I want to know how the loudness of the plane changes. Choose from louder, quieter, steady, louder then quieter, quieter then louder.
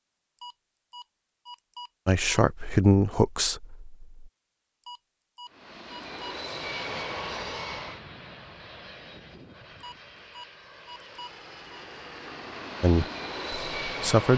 quieter then louder.